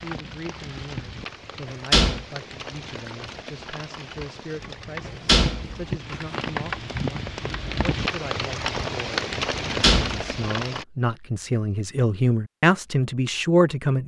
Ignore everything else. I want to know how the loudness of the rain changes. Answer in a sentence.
The volume of the rain goes up.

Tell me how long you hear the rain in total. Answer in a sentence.
You can hear the rain for 11 seconds altogether.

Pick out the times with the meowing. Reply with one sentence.
You can't hear the meowing here.